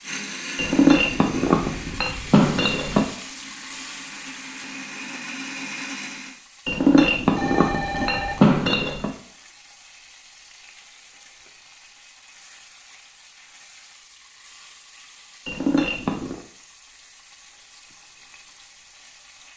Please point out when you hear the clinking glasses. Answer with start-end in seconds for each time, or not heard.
0.6-3.0, 6.7-9.1, 15.4-16.4.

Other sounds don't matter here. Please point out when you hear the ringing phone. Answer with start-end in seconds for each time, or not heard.
7.3-8.6.